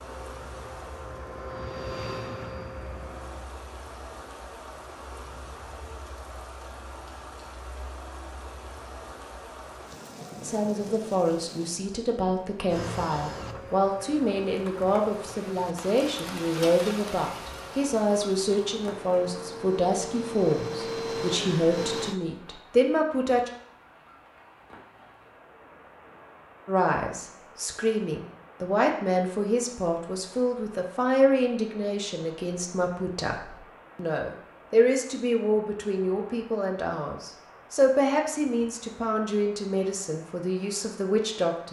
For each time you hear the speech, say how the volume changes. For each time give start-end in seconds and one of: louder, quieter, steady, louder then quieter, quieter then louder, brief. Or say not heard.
10.4-23.5 steady
26.6-41.6 steady.